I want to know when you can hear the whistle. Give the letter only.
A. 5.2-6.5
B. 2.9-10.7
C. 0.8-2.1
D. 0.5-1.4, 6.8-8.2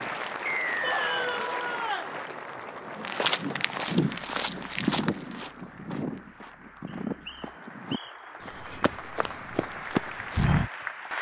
D.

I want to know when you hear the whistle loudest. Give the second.
1 s.